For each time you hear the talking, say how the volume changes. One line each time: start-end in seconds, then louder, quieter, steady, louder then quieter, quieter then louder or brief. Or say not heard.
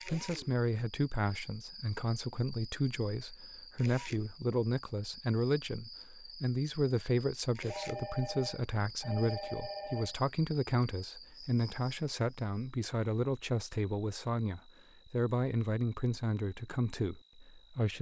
0.1-17.9 steady.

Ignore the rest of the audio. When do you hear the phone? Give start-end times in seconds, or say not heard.
7.7-10.2.